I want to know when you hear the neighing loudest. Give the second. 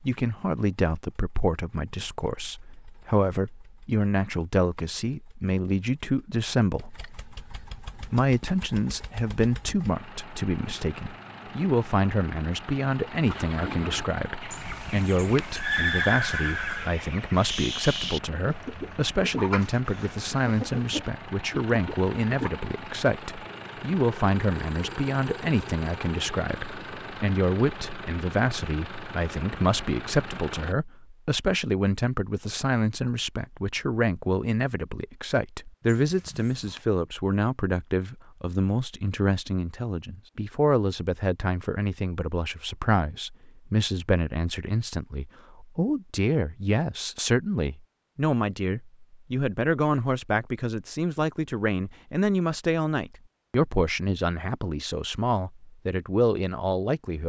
16 s.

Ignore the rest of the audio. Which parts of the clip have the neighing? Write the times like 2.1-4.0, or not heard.
14.5-16.9, 35.9-36.9.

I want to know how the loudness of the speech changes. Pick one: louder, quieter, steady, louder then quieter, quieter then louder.
steady.